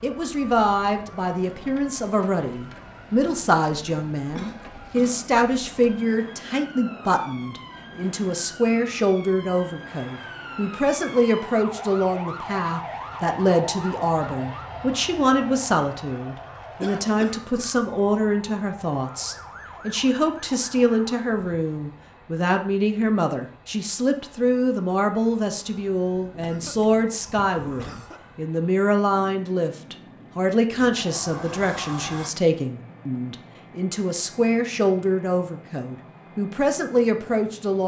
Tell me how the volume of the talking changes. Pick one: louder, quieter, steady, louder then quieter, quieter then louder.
steady.